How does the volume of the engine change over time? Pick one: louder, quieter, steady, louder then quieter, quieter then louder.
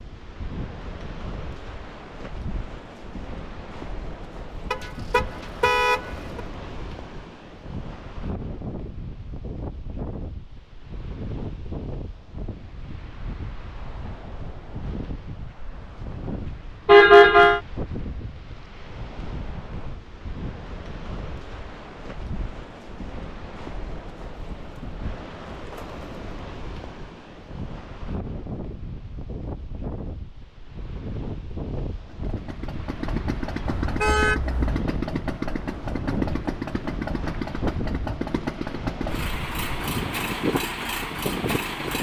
steady.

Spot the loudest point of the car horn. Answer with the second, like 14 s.
17 s.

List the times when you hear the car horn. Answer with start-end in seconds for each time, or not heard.
4.7-6.4, 16.9-17.6, 33.8-34.8.